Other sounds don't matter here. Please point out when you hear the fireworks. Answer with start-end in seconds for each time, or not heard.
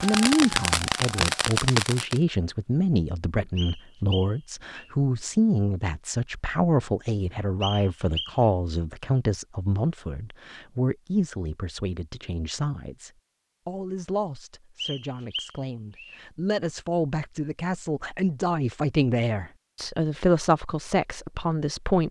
0.0-2.2.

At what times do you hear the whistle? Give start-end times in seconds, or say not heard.
3.5-4.9, 7.6-8.4, 14.8-16.2.